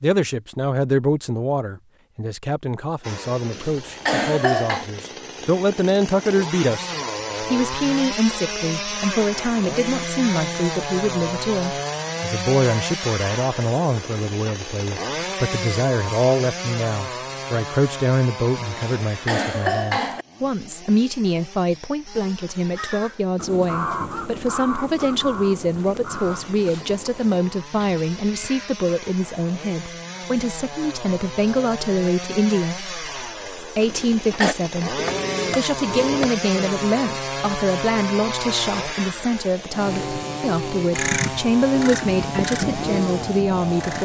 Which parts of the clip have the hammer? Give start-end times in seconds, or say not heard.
35.0-36.7.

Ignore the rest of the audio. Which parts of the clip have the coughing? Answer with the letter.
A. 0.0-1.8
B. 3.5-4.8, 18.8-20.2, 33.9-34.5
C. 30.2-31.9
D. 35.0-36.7
B.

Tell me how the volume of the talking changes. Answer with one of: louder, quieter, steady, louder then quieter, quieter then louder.
steady.